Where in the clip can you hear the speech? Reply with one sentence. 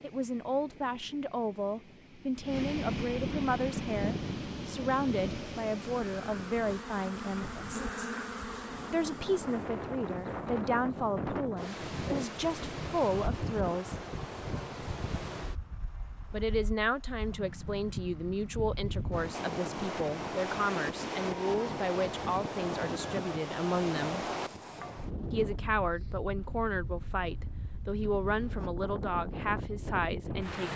You can hear the speech from 0.0 to 8.1 s, from 8.9 to 13.9 s, from 16.3 to 24.2 s and from 25.3 to 30.7 s.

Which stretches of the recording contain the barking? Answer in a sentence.
You can't hear the barking here.